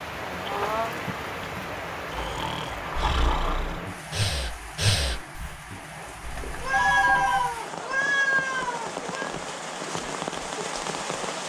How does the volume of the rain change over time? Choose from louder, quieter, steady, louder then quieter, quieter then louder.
quieter then louder.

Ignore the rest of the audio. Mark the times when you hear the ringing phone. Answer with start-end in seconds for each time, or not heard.
0.5-1.6, 6.2-7.5.